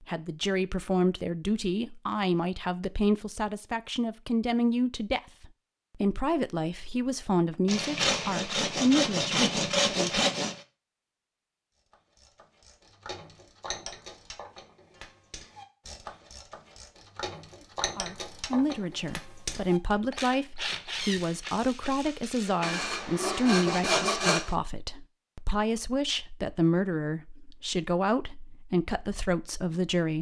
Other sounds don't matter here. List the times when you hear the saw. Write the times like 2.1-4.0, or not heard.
7.7-10.6, 22.6-24.6.